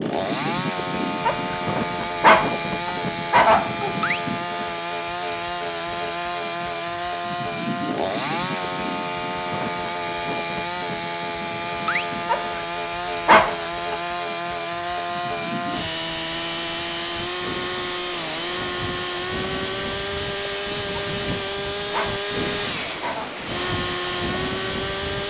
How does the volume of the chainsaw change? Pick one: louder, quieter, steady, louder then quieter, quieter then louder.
steady.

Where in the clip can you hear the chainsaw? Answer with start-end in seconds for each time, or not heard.
0.0-25.2.